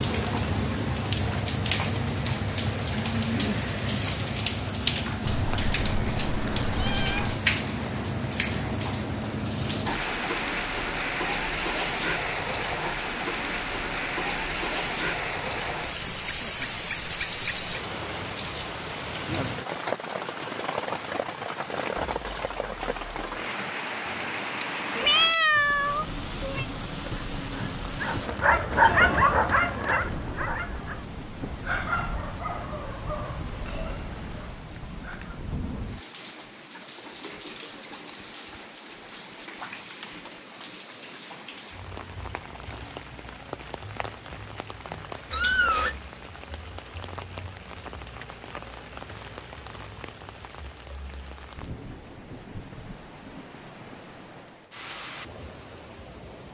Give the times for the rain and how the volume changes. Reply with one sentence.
The rain can be heard from 0.0 to 56.4 s, getting quieter.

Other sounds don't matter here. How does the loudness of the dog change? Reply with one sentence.
The loudness of the dog goes down.